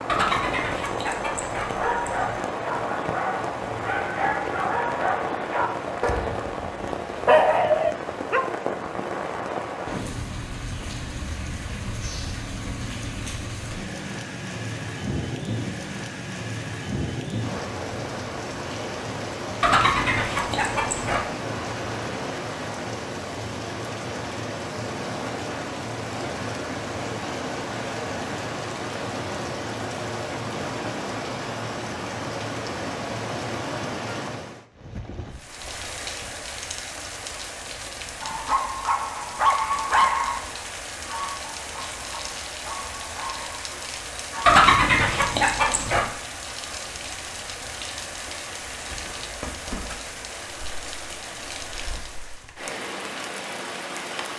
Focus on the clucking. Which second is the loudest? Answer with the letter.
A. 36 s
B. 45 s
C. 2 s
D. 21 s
B.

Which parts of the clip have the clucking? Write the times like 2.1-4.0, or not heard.
0.1-2.4, 19.6-21.2, 44.5-46.0.